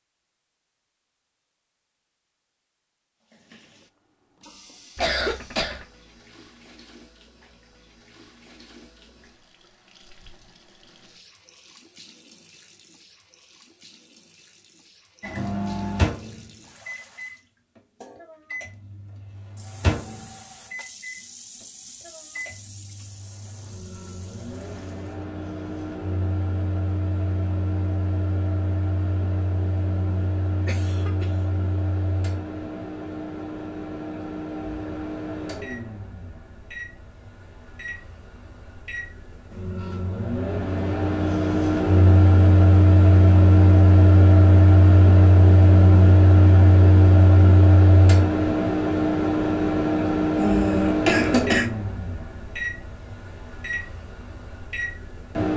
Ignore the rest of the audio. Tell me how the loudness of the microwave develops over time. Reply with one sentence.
The loudness of the microwave goes up.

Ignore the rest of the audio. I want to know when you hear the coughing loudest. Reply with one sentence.
The volume of the coughing peaks at 51 seconds.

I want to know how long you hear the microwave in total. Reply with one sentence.
You can hear the microwave for 40 seconds altogether.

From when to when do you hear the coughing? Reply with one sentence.
You can hear the coughing from 5.0 to 5.8 s, from 30.6 to 31.2 s and from 50.4 to 51.7 s.